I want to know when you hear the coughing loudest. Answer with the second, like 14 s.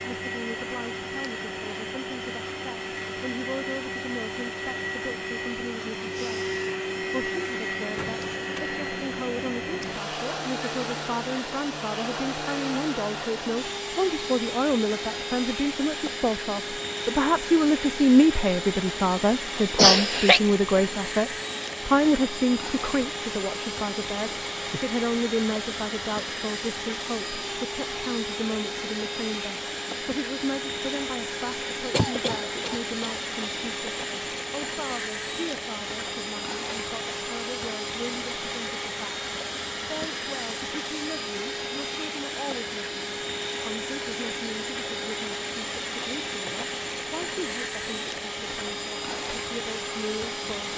20 s.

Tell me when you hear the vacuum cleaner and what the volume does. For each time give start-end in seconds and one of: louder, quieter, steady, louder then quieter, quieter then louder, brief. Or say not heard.
0.0-50.7 steady.